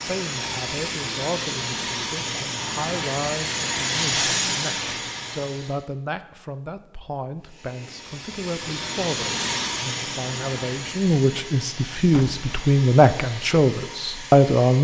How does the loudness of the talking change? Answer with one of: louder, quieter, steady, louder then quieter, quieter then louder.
louder.